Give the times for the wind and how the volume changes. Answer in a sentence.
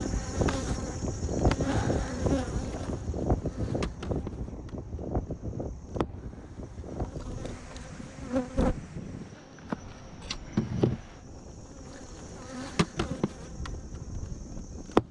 The wind can be heard from 0.0 to 15.0 s, getting quieter.